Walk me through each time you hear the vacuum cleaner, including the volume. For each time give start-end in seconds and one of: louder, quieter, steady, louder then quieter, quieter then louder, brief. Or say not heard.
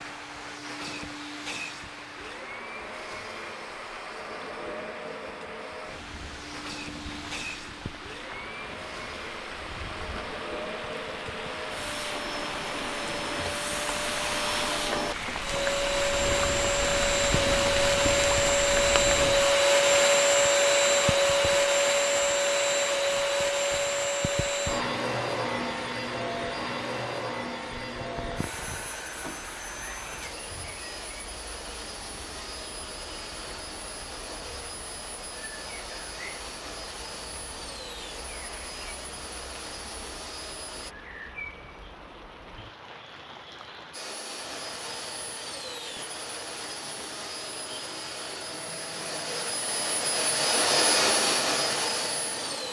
0.0-41.0 louder then quieter
43.9-52.6 louder.